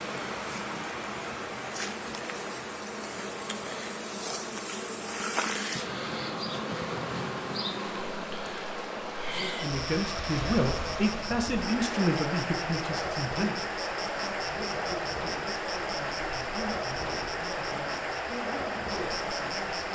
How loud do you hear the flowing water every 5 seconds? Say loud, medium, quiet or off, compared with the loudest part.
medium, medium, loud, loud.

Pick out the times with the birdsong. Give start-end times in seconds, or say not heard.
not heard.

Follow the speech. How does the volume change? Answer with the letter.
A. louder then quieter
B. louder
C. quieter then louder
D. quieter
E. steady
D.